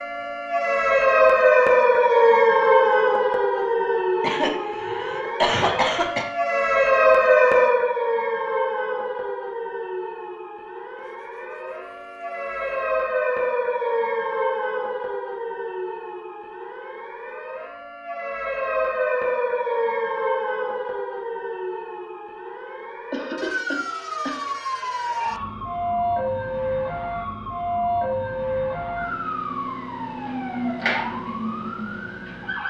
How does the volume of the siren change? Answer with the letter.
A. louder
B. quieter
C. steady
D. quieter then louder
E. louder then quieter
B.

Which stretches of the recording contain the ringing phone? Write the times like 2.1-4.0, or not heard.
not heard.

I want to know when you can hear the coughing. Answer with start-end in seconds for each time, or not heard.
4.2-6.2, 23.1-24.5.